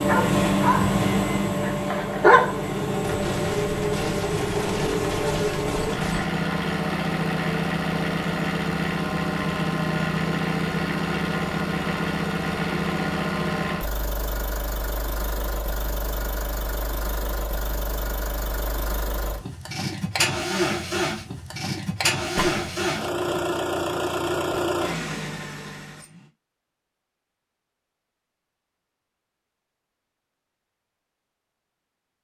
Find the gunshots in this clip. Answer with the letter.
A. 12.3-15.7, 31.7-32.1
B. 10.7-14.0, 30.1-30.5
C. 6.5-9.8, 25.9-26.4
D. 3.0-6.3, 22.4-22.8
D.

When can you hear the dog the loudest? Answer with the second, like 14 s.
2 s.